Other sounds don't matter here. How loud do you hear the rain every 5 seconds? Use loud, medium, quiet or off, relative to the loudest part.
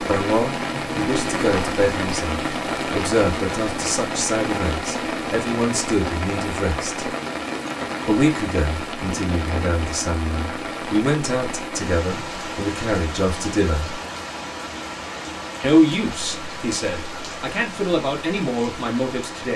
loud, loud, medium, medium.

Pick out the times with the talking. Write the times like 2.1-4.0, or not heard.
0.0-7.0, 8.1-13.9, 15.6-19.5.